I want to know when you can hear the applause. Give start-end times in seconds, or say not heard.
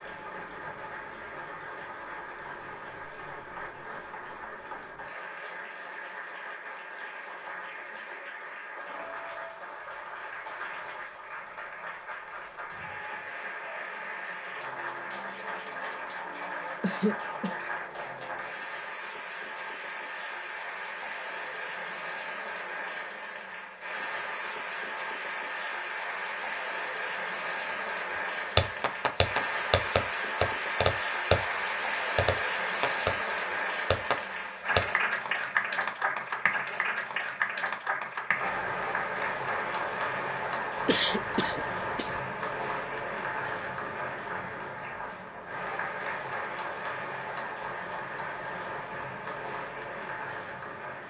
0.0-51.0.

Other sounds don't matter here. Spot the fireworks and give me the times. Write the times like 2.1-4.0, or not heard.
27.7-34.9.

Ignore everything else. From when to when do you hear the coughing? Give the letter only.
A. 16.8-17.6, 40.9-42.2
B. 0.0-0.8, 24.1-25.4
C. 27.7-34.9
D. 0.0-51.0
A.